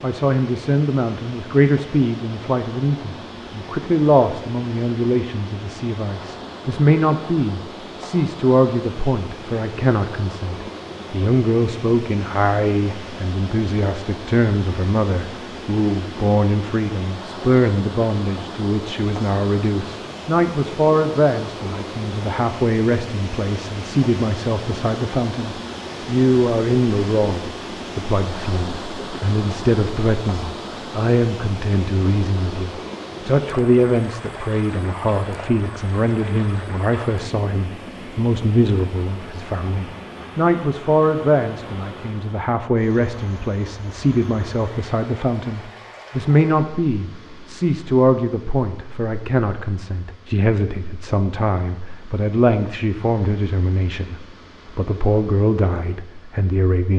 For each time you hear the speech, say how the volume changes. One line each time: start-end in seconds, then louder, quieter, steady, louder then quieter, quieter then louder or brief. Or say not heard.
0.0-56.9 steady.